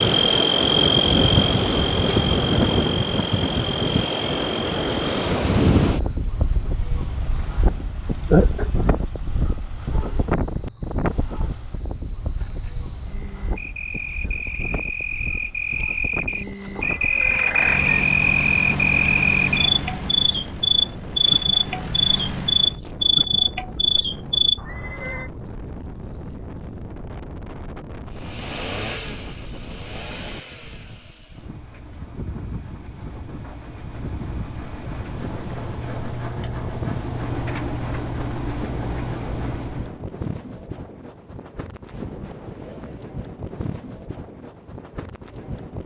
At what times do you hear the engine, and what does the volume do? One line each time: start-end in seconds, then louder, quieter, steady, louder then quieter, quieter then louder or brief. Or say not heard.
17.1-22.8 quieter then louder
28.1-40.0 quieter then louder.